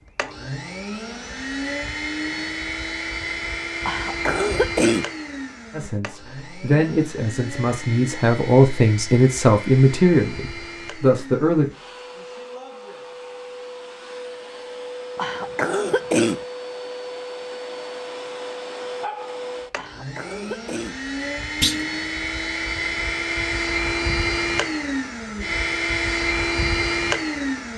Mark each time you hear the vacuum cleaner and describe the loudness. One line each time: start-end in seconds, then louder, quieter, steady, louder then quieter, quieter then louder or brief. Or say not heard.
0.1-27.7 quieter then louder.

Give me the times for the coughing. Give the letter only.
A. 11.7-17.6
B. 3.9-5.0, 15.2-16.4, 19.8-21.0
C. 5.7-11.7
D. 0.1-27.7
B.